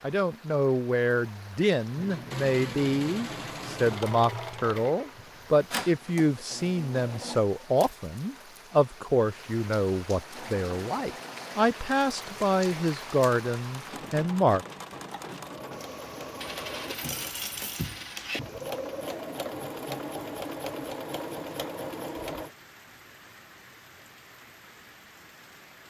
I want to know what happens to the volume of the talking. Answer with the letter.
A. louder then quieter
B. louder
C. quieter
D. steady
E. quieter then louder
D.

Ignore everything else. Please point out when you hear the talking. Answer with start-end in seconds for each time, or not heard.
0.0-14.7.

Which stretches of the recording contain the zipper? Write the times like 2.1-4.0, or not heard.
not heard.